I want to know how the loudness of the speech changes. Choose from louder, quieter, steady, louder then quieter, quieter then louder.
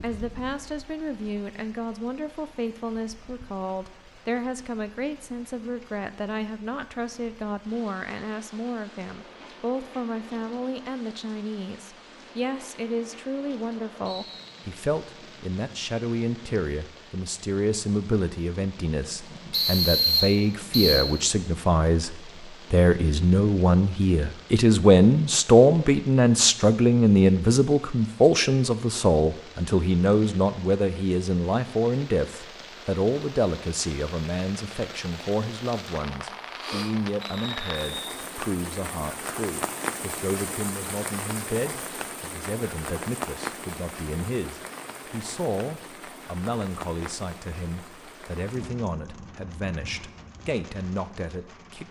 louder then quieter.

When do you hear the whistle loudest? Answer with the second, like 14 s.
20 s.